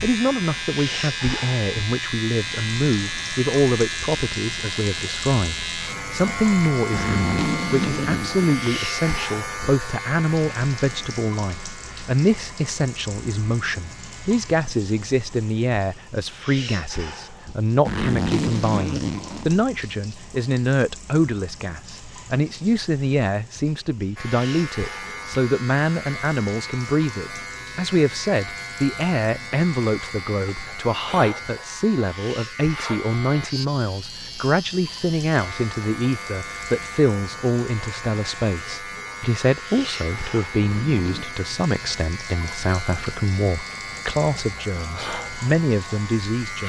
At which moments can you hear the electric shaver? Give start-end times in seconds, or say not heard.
0.0-14.4, 24.1-46.6.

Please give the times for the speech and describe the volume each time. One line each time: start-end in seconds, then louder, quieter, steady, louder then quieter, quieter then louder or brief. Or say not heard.
0.0-46.6 steady.